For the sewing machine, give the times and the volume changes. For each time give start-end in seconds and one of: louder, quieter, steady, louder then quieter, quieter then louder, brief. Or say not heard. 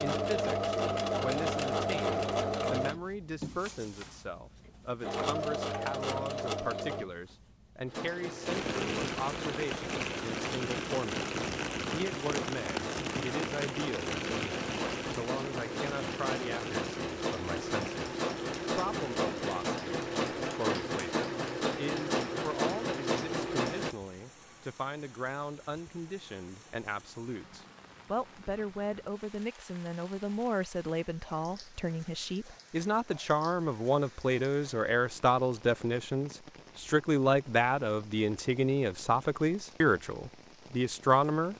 0.0-23.9 quieter then louder.